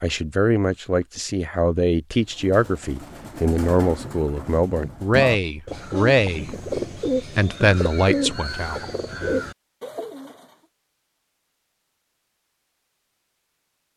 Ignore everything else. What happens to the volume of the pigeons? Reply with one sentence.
The volume of the pigeons goes up.